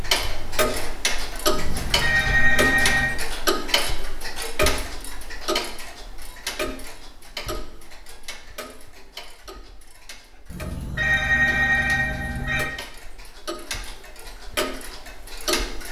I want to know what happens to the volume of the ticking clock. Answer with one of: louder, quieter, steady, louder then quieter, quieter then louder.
quieter then louder.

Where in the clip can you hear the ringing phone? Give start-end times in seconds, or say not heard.
1.5-3.1, 10.4-12.7.